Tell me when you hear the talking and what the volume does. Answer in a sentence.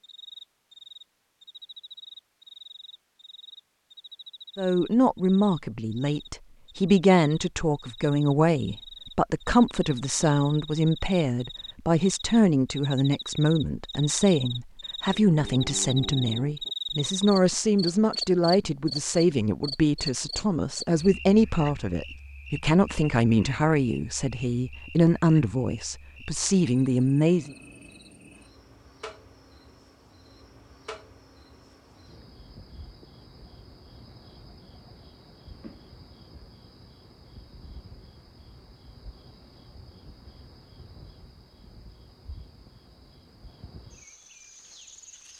You can hear the talking from 4.5 to 27.6 s, at a steady volume.